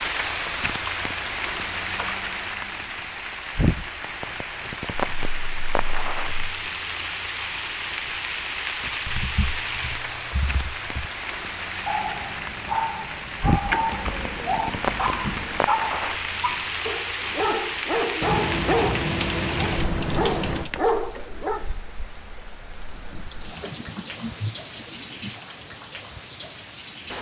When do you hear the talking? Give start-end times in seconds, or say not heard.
not heard.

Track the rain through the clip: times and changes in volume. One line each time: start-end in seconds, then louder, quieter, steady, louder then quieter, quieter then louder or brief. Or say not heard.
0.0-27.1 quieter.